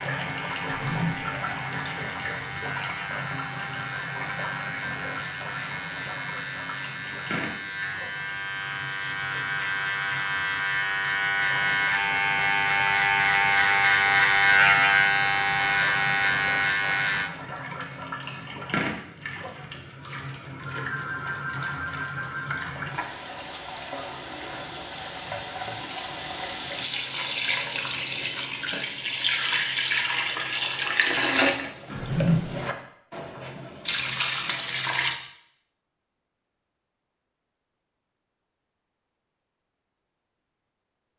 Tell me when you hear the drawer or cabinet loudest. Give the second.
32 s.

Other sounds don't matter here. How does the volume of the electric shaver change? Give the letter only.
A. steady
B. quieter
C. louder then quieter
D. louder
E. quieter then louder
D.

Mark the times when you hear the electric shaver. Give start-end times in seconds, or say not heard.
0.0-17.3.